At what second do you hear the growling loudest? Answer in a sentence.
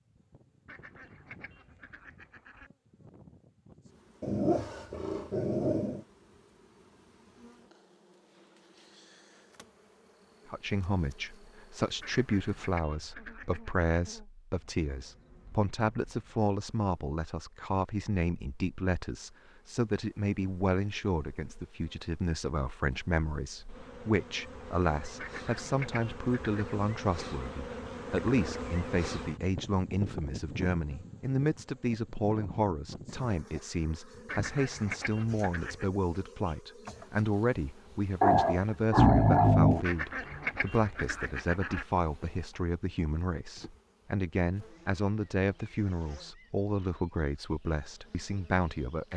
The loudest moment of the growling is at 39 seconds.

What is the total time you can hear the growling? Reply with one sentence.
The growling can be heard for 4 seconds in total.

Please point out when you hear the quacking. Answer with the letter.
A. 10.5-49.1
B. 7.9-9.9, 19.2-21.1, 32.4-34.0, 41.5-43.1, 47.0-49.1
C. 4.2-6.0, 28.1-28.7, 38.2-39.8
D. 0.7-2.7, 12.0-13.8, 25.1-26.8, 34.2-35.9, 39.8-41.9
D.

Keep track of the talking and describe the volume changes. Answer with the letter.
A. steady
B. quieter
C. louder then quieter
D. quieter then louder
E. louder
A.